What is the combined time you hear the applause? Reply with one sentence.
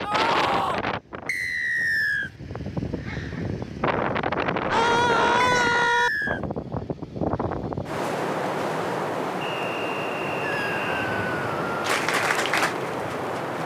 The applause can be heard for 2 seconds in total.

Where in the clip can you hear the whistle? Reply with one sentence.
You can hear the whistle from 1.2 to 2.3 s, from 5.4 to 6.4 s and from 9.4 to 11.1 s.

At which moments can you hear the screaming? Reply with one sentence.
The screaming can be heard from 0.0 to 0.8 s, from 4.7 to 6.1 s and from 10.4 to 11.8 s.